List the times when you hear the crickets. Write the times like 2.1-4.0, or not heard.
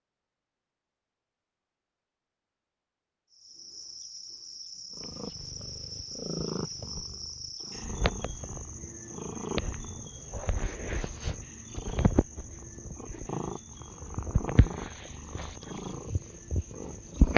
3.3-17.3.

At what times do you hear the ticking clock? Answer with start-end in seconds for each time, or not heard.
not heard.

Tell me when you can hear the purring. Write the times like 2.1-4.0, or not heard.
5.0-17.3.